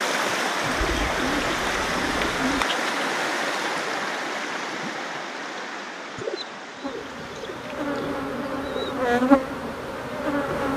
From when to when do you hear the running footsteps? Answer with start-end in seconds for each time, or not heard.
not heard.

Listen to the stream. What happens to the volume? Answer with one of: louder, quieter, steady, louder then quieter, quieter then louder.
quieter.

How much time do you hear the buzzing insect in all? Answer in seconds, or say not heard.
4 s.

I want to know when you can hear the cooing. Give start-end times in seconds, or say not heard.
0.6-2.6, 6.2-9.1.